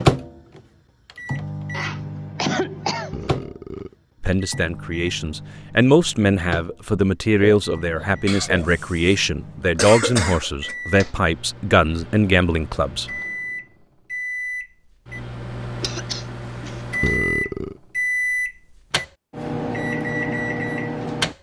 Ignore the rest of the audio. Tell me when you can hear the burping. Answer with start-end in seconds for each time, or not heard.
3.1-4.0, 7.3-8.7, 17.0-17.8.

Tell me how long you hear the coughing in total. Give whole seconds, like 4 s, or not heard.
5 s.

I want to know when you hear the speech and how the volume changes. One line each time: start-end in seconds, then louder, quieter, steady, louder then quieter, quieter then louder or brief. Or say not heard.
4.2-13.1 steady.